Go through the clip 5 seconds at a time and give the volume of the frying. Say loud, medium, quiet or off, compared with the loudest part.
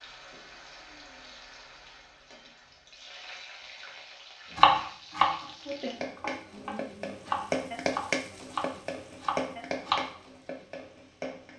quiet, loud, medium.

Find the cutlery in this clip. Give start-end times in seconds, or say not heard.
not heard.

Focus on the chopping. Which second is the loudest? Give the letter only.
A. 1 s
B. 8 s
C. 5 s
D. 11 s
C.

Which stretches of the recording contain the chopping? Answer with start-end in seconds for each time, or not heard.
4.5-10.1.